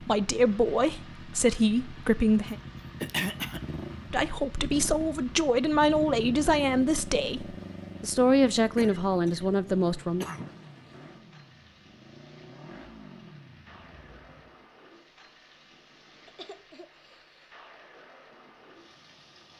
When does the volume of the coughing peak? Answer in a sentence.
The volume of the coughing peaks at 3 seconds.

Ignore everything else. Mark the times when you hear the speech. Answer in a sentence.
The speech can be heard from 0.0 to 2.5 s and from 4.1 to 10.2 s.